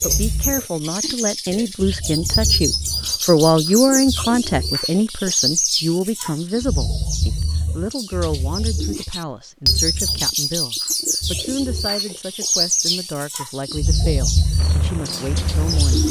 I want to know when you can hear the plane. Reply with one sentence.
You can hear the plane from 14.6 to 16.0 s.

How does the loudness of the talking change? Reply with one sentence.
The loudness of the talking goes down.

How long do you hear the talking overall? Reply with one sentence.
The talking can be heard for 16 seconds in total.